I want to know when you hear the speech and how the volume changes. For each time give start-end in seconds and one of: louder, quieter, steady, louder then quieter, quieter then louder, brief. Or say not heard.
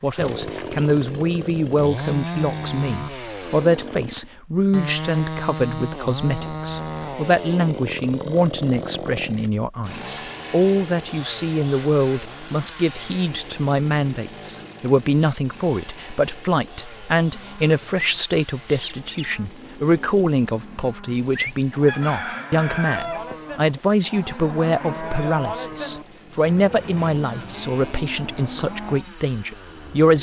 0.0-30.1 steady.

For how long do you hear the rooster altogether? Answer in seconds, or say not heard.
2 s.